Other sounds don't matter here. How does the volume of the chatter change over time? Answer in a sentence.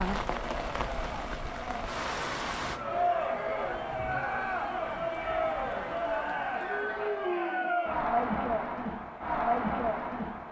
The volume of the chatter goes up.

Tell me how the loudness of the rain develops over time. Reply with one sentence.
The volume of the rain goes down.